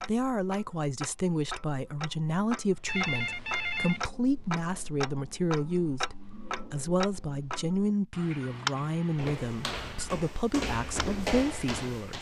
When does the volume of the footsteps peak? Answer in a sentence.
The loudest moment of the footsteps is at 11 seconds.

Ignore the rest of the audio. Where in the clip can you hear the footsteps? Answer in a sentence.
The footsteps can be heard from 9.2 to 12.1 s.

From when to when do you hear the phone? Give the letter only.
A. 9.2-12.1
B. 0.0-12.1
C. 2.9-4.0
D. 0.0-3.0
C.